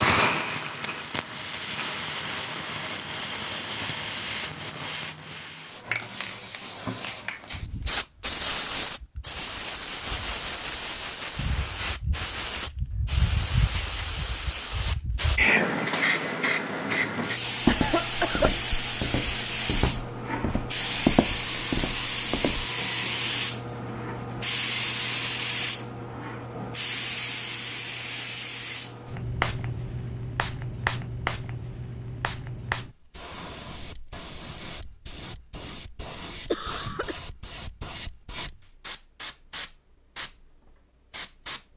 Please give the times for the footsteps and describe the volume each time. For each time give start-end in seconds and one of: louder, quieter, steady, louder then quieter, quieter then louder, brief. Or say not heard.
17.6-22.6 louder then quieter.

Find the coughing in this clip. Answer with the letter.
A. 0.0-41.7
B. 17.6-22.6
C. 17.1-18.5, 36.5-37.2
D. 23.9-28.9
C.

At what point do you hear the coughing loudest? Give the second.
18 s.